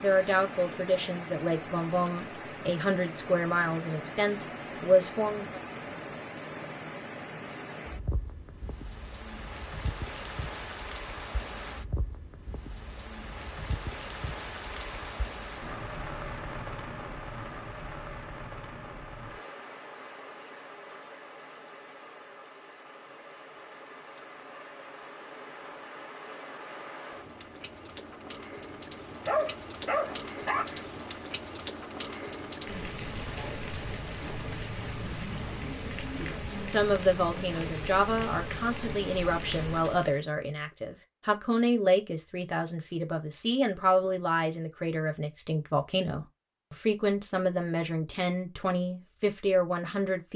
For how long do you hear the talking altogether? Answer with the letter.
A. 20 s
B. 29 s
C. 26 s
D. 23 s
A.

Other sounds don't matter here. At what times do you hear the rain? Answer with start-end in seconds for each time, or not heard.
0.0-40.2.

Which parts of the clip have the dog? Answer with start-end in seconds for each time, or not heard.
29.2-30.9.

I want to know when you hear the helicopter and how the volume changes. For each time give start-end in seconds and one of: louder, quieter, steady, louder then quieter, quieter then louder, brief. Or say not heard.
not heard.